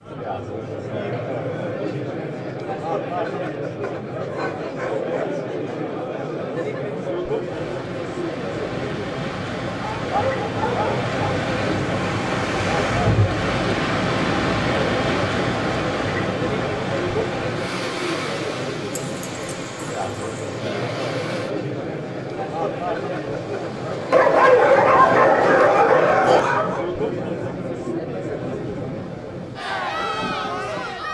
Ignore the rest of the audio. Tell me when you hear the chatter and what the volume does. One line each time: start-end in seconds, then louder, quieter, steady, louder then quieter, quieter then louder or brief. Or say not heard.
0.0-31.0 steady.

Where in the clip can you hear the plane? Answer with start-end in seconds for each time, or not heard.
not heard.